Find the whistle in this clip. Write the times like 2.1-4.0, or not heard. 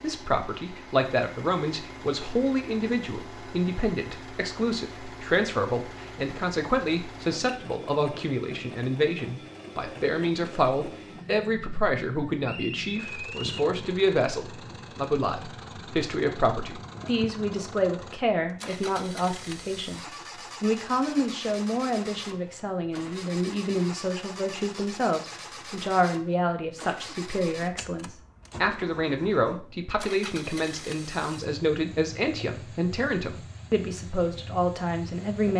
12.4-13.7.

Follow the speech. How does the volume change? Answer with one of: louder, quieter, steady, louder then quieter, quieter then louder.
steady.